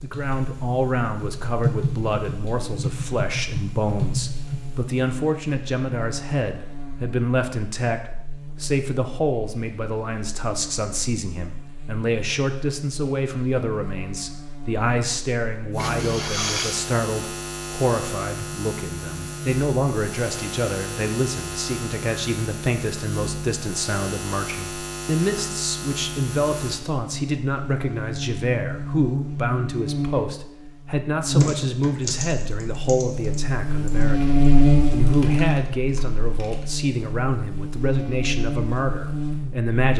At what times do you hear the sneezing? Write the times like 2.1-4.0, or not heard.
15.8-16.9.